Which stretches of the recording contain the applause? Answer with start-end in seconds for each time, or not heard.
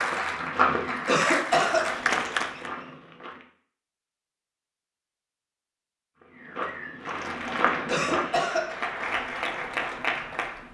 0.0-2.7, 7.0-10.6.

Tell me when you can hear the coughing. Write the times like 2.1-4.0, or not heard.
1.1-1.9, 7.8-8.9.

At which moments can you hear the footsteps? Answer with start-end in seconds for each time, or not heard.
0.0-3.5, 6.2-8.2.